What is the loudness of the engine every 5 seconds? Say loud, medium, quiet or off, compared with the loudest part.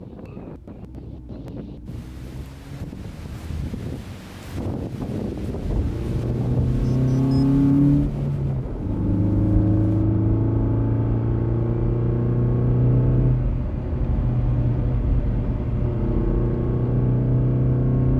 quiet, loud, loud, loud.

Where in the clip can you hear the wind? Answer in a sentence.
The wind can be heard from 0.0 to 10.1 s.